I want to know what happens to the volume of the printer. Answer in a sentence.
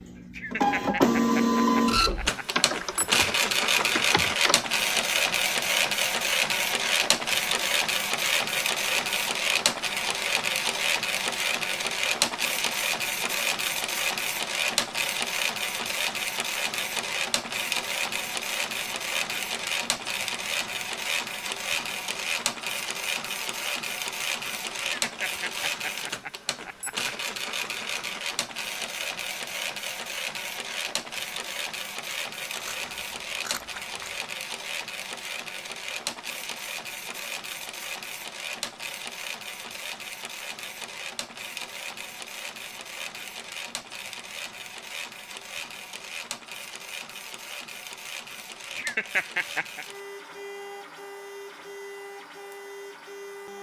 The loudness of the printer goes down.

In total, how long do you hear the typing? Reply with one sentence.
You can hear the typing for 2 seconds altogether.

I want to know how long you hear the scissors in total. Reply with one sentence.
You can hear the scissors for 2 seconds altogether.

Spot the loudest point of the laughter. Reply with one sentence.
The loudest moment of the laughter is at 49 seconds.